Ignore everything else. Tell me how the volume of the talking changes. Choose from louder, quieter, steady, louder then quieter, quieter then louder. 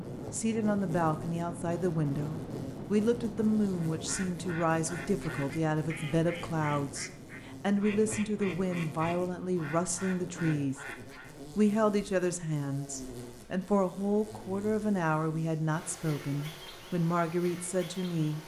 steady.